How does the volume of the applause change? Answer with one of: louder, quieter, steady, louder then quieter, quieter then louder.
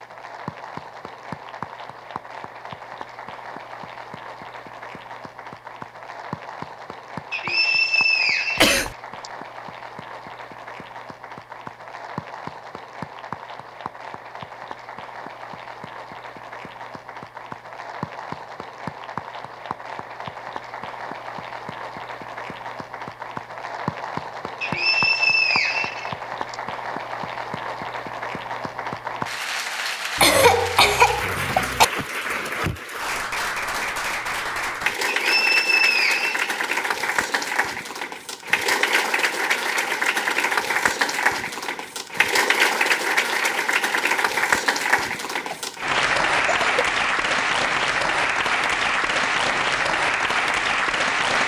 louder.